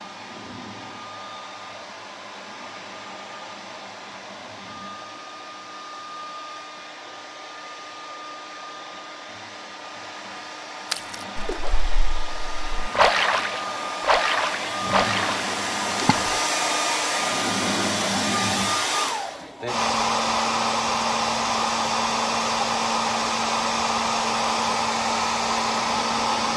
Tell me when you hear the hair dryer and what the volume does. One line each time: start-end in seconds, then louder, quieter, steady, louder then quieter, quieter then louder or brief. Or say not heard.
0.0-26.5 louder.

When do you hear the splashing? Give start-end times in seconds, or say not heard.
10.9-16.4.